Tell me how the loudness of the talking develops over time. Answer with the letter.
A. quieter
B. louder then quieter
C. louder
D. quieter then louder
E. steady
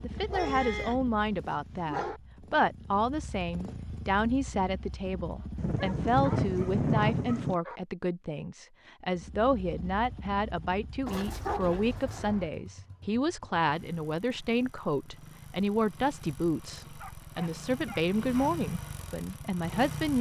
E.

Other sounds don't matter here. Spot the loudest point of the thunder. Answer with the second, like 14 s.
7 s.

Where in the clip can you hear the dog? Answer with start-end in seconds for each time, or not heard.
0.1-1.0, 1.7-2.2, 5.8-7.8, 11.1-12.5, 16.9-18.5.